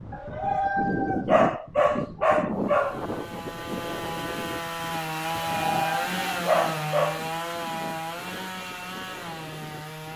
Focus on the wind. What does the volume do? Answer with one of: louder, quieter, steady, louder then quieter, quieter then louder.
quieter.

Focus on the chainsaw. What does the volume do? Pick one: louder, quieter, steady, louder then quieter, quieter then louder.
louder then quieter.